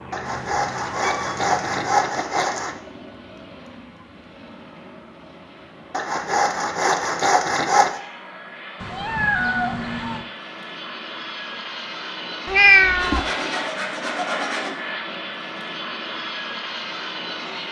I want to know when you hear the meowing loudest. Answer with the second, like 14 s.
13 s.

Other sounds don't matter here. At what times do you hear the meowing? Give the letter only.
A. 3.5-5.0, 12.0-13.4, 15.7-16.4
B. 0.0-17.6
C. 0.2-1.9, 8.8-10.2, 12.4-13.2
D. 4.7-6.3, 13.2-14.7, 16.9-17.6
C.